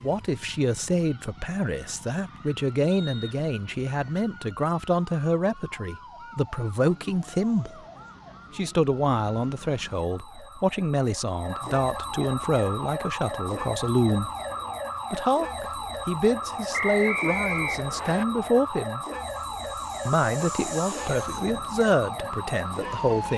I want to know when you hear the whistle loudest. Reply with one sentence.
The volume of the whistle peaks at 17 seconds.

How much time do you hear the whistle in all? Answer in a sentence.
You can hear the whistle for 2 seconds altogether.